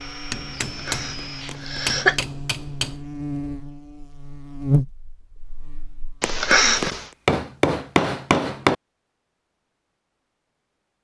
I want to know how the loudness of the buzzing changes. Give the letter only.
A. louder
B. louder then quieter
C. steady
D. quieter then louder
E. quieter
B.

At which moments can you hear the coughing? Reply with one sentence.
The coughing can be heard from 0.6 to 2.2 s and from 6.2 to 7.0 s.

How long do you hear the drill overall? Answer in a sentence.
The drill can be heard for 2 seconds in total.